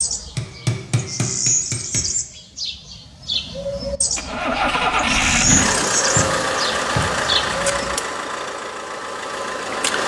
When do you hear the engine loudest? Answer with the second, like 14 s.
5 s.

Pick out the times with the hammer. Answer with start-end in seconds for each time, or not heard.
0.3-2.0, 5.5-7.0.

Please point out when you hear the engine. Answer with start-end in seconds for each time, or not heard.
4.2-10.0.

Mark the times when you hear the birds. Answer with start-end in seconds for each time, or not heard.
0.0-8.0.